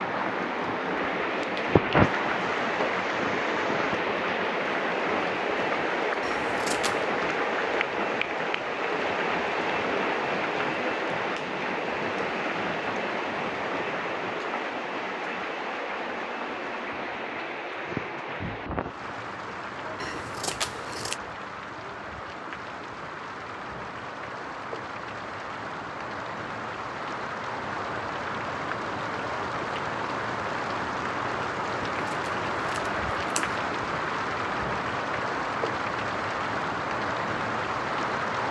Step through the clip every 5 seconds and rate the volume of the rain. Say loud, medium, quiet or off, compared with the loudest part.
loud, loud, loud, medium, medium, medium, loud, loud.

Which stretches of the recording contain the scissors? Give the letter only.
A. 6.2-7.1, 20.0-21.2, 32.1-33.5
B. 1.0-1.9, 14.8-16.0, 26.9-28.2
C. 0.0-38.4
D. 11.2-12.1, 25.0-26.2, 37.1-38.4
A.